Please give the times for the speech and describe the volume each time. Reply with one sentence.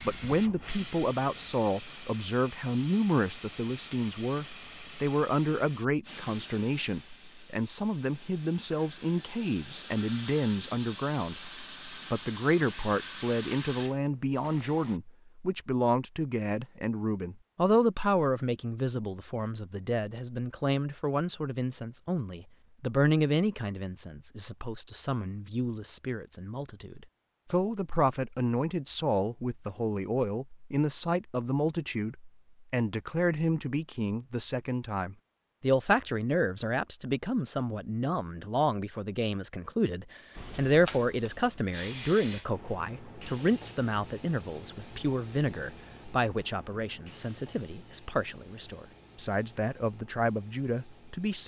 You can hear the speech from 0.0 to 51.4 s, at a steady volume.